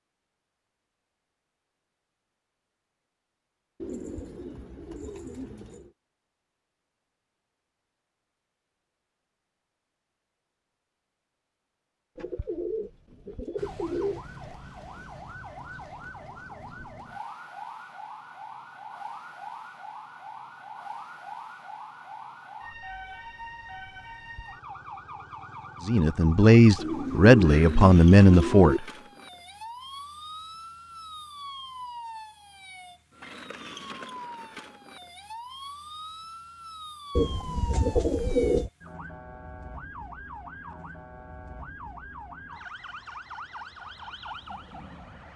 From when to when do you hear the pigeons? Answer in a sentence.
The pigeons can be heard from 3.8 to 5.9 s, from 12.2 to 14.4 s, from 26.8 to 28.8 s and from 37.1 to 38.7 s.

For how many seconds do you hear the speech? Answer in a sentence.
You can hear the speech for 3 seconds altogether.